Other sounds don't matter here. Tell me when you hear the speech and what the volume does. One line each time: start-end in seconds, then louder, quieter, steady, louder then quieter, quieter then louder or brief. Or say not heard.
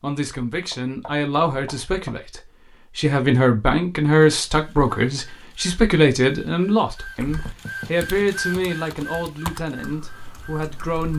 0.0-11.1 louder then quieter.